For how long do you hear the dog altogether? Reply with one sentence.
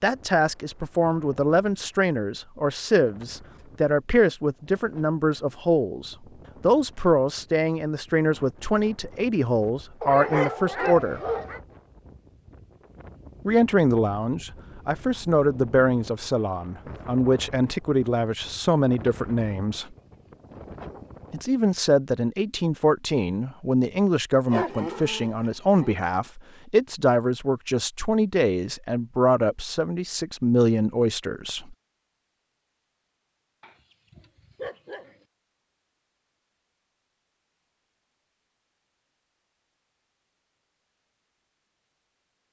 The dog can be heard for 5 seconds in total.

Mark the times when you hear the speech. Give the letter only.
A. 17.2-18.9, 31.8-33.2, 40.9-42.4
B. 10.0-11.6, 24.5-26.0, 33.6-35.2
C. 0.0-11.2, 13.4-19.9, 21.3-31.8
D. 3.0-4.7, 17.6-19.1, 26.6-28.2
C.